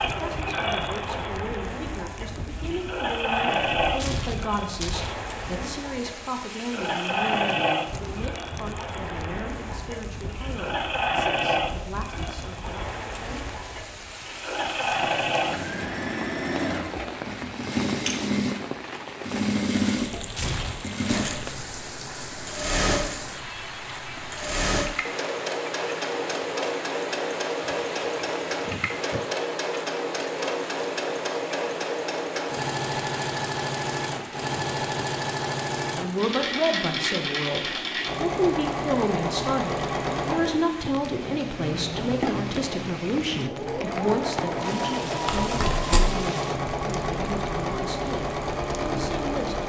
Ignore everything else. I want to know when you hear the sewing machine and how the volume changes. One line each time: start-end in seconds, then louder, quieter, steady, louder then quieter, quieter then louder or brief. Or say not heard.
0.0-49.6 steady.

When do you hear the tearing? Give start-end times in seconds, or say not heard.
3.8-5.2, 20.1-20.9, 45.2-46.1.